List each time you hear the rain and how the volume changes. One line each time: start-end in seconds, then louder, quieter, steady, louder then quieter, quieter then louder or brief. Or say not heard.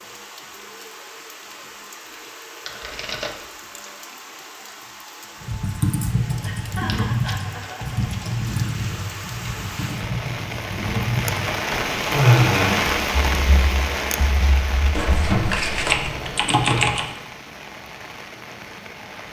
0.0-19.2 louder then quieter.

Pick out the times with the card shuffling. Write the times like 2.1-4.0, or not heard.
2.6-3.6, 6.7-7.8, 14.9-16.1.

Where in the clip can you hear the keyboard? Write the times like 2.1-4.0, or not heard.
5.4-17.1.